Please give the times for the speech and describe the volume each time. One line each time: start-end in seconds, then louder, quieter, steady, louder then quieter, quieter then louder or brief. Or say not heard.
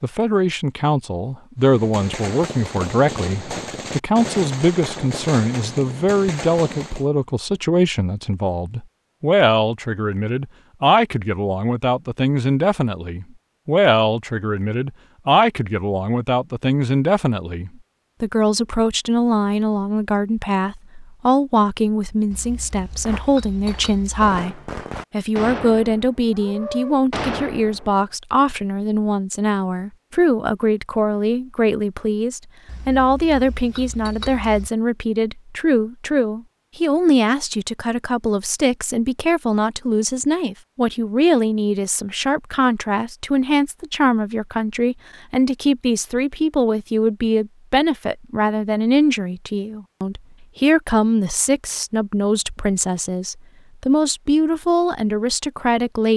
0.0-56.1 steady.